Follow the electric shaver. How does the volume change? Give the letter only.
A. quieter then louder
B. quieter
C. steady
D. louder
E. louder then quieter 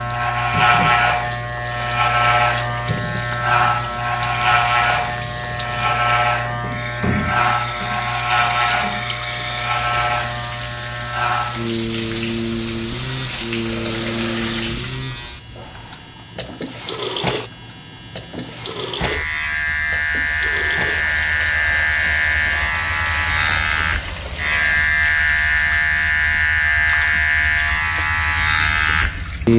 A.